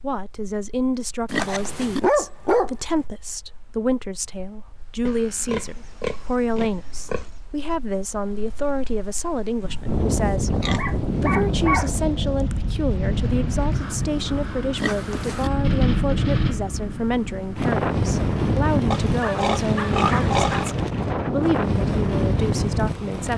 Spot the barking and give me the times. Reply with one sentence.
The barking can be heard from 1.4 to 2.8 s, from 10.7 to 12.6 s and from 19.2 to 20.8 s.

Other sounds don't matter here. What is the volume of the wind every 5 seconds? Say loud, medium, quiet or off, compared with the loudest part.
quiet, quiet, loud, loud, loud.